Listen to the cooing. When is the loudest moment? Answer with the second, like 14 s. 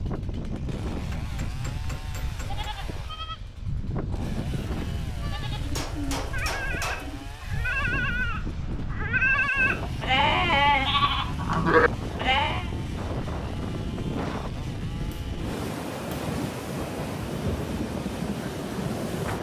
6 s.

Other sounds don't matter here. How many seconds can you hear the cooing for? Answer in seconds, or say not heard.
2 s.